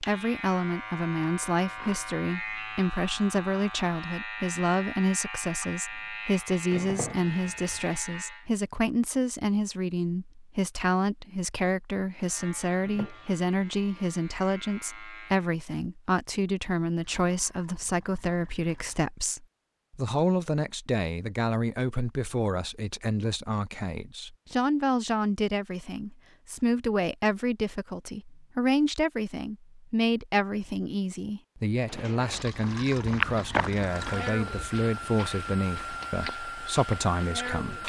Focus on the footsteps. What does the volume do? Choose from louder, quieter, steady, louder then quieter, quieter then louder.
quieter.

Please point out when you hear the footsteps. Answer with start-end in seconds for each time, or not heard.
31.9-37.8.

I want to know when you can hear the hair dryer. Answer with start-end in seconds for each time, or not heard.
33.9-37.8.